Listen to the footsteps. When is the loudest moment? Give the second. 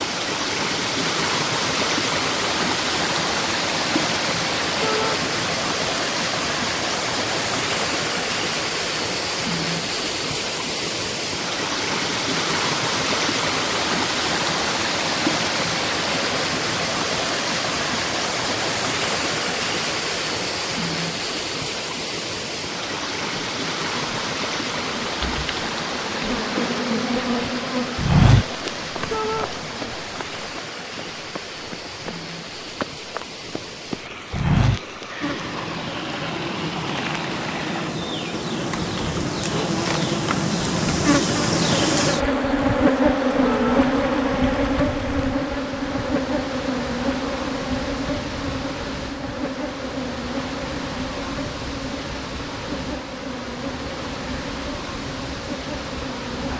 28 s.